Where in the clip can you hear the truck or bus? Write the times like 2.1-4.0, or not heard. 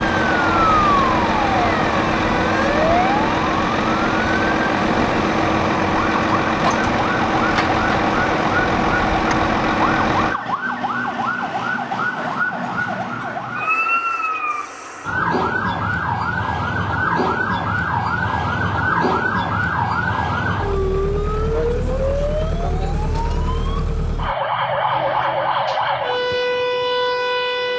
0.0-10.4.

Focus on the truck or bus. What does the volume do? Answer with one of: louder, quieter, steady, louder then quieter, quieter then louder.
steady.